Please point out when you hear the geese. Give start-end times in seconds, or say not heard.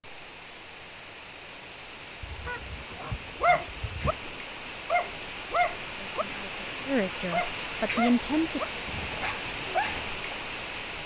2.2-4.2.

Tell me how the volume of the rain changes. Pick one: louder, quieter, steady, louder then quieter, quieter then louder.
louder.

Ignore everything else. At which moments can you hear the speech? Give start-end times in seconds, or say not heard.
6.0-8.8.